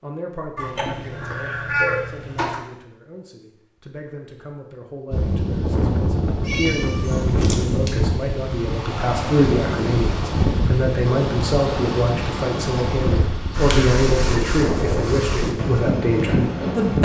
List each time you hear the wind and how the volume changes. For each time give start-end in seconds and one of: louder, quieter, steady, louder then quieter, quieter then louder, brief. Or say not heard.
5.1-17.0 steady.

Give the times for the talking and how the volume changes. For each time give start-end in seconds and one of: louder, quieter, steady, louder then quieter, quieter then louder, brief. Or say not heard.
0.0-17.0 louder.